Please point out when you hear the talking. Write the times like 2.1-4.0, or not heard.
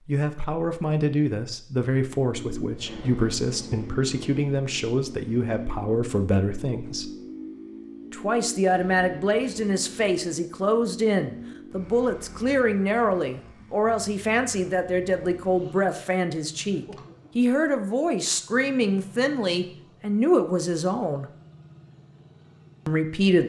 0.1-7.1, 8.1-21.2, 22.9-23.4.